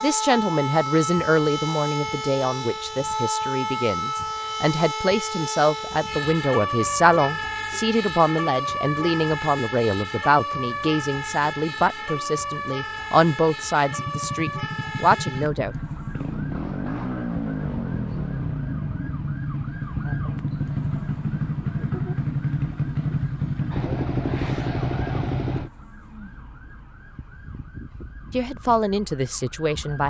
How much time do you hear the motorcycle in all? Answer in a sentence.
The motorcycle can be heard for 12 seconds in total.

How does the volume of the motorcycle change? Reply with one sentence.
The loudness of the motorcycle goes up.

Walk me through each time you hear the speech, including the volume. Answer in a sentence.
You can hear the speech from 0.0 to 15.8 s, at a steady volume; and briefly from 28.3 to 30.0 s.